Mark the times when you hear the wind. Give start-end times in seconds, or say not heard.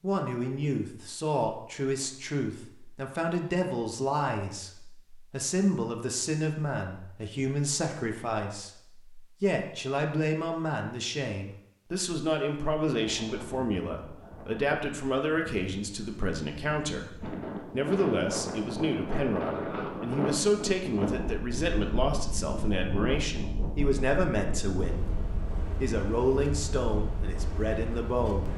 12.9-28.5.